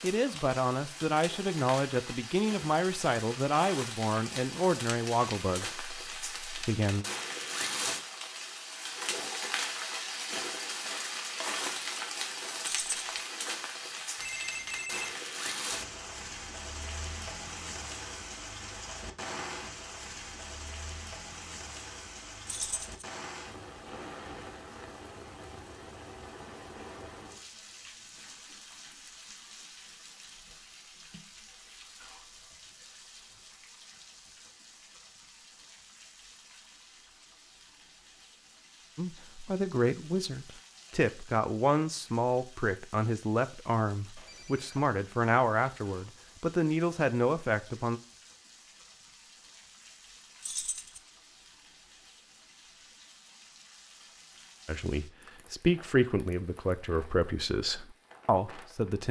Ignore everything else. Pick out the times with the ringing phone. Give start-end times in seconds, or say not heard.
14.2-15.2, 44.1-44.9.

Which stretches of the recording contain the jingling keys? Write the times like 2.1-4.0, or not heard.
12.6-13.1, 22.4-23.1, 50.4-51.0.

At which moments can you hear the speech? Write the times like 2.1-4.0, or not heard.
0.0-7.0, 39.0-48.0, 54.6-59.0.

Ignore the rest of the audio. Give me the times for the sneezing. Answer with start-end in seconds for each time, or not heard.
not heard.